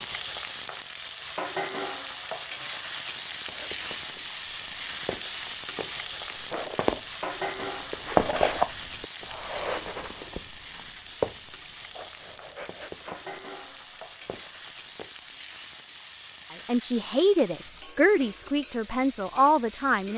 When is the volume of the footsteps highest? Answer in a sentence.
The loudest moment of the footsteps is at 8 seconds.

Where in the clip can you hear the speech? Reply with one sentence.
You can hear the speech from 16.6 to 20.1 s.